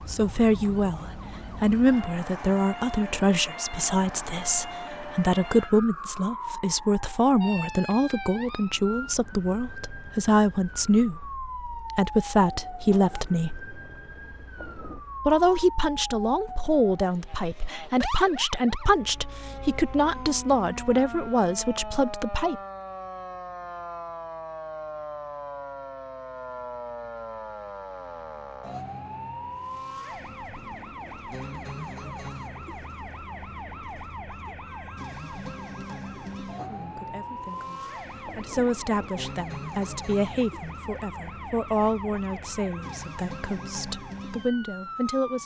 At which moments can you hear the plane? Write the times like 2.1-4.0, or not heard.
not heard.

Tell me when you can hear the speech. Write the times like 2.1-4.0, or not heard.
0.1-13.6, 15.2-22.6, 36.6-45.4.